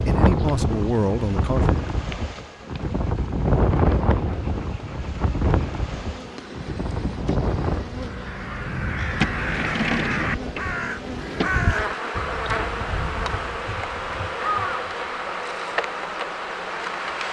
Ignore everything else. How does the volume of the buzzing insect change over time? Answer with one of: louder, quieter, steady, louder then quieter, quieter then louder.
louder.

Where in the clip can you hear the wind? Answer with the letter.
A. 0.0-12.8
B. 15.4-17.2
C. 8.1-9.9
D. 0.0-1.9
A.